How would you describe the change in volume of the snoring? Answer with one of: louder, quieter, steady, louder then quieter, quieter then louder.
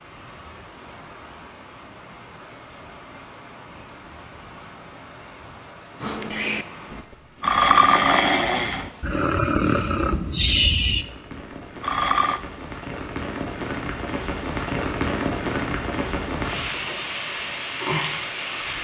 louder then quieter.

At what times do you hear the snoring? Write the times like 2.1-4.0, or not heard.
6.0-12.4.